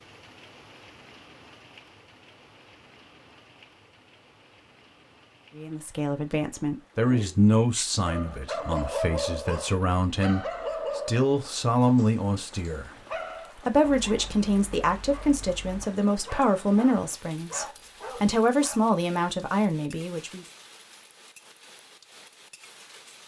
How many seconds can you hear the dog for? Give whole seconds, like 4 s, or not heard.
12 s.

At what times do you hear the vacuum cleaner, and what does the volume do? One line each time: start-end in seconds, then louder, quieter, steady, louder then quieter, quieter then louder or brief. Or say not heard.
not heard.